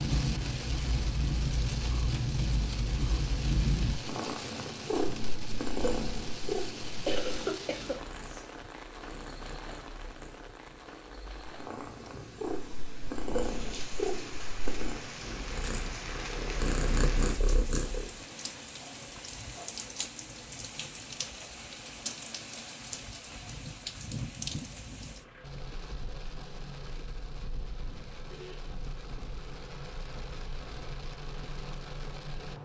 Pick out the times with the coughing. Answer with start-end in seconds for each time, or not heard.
7.0-8.4.